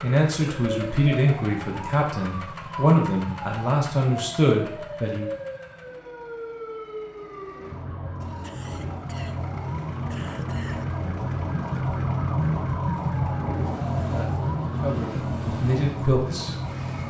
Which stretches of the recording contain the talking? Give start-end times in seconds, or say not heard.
0.0-5.3, 14.0-17.0.